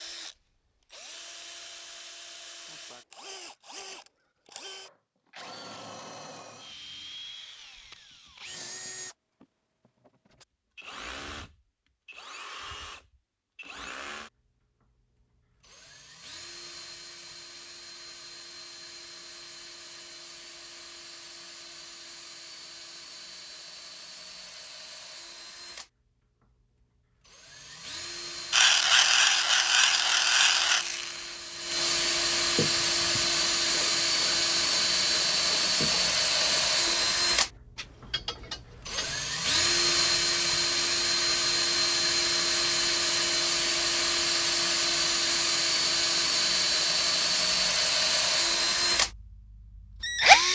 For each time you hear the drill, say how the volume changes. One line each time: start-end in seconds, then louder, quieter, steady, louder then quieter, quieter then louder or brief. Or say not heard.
0.0-50.4 louder.